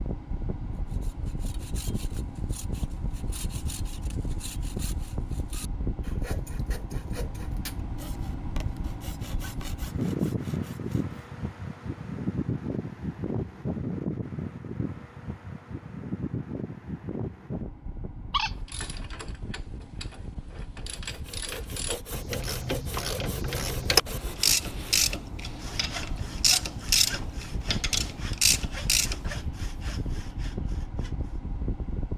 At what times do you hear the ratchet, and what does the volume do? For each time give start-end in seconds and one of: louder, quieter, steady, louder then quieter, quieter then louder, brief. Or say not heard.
18.6-29.3 louder.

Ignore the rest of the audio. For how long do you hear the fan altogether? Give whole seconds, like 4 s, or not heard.
32 s.